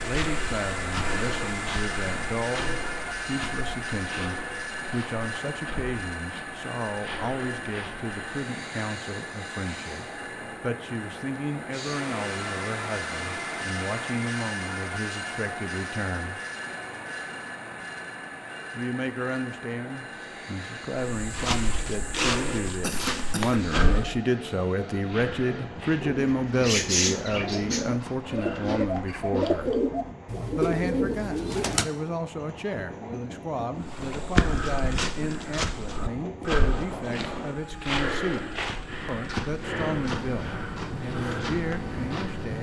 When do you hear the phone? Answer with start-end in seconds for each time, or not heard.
not heard.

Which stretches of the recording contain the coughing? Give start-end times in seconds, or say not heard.
22.8-23.6.